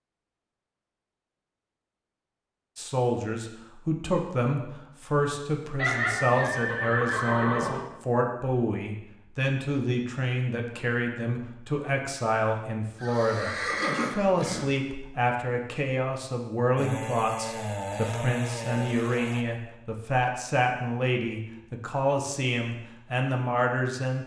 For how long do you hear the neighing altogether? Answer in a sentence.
The neighing can be heard for 4 seconds in total.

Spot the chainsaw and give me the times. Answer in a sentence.
You can hear the chainsaw from 16.8 to 19.4 s.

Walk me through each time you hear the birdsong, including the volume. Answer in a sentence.
The birdsong can't be heard in this clip.